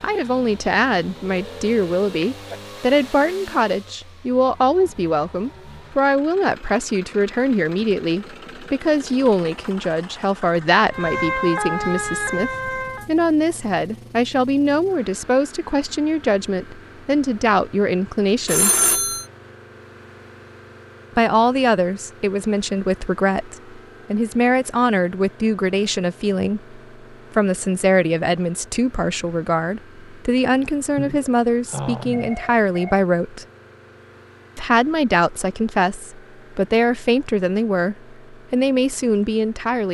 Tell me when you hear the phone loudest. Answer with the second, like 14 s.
19 s.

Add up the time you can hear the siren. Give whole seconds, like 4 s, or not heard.
2 s.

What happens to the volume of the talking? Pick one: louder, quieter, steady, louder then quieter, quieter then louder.
steady.